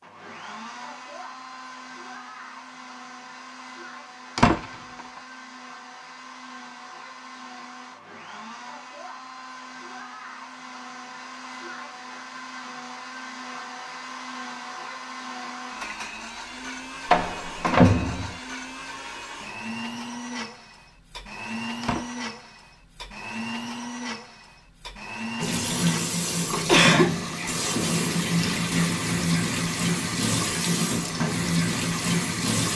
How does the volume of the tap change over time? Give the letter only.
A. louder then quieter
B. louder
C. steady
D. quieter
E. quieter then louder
C.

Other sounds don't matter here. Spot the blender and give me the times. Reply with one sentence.
The blender can be heard from 0.0 to 32.7 s.